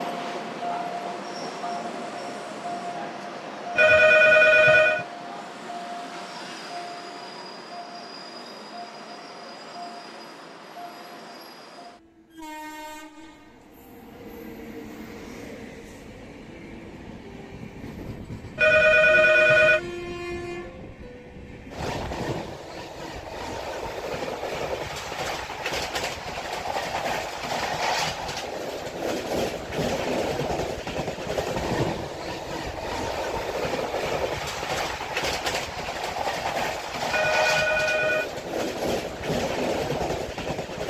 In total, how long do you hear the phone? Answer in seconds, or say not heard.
4 s.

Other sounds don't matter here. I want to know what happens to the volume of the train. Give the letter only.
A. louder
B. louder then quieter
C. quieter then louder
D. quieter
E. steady
C.